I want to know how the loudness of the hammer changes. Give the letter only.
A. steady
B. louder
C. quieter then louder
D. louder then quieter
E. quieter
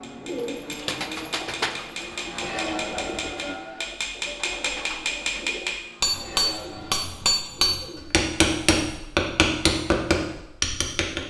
B.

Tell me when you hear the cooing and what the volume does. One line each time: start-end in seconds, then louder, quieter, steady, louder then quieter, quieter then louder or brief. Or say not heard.
0.2-8.1 quieter.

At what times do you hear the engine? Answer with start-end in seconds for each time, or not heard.
0.0-7.0.